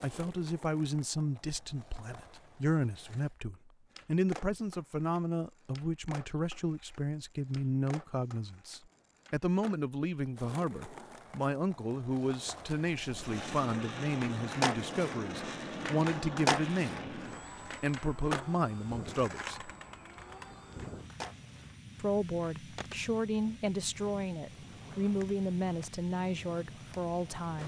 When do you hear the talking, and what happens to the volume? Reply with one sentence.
The talking can be heard from 0.0 to 17.2 s, at a steady volume; briefly from 17.8 to 19.7 s; and from 22.0 to 27.6 s, at a steady volume.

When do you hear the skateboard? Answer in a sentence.
You can hear the skateboard from 0.0 to 27.6 s.